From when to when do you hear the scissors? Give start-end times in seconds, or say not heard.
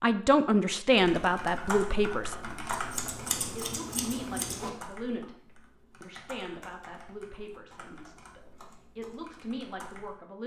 2.7-4.7.